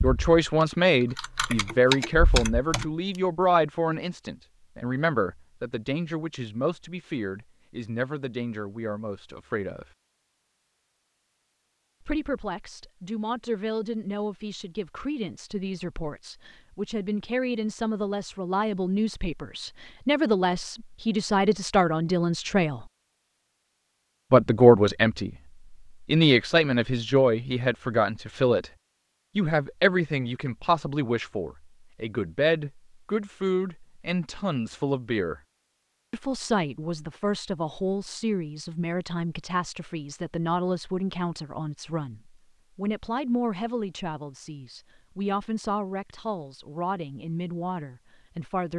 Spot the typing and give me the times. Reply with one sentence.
The typing can be heard from 0.0 to 2.9 s.